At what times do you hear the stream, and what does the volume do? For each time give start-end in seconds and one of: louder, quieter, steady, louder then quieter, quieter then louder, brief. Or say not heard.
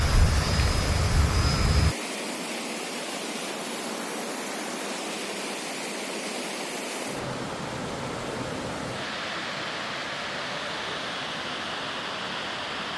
0.0-12.9 steady.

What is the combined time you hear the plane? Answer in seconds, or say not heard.
2 s.